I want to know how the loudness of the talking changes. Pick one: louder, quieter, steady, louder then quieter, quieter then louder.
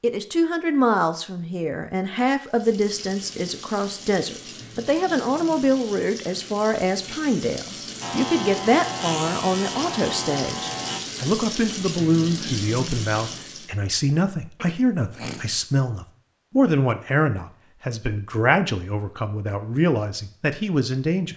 steady.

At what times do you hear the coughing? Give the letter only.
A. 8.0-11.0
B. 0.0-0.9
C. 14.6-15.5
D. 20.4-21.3
C.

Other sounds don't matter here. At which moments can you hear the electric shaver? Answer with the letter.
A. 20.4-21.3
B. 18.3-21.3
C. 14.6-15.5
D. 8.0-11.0
D.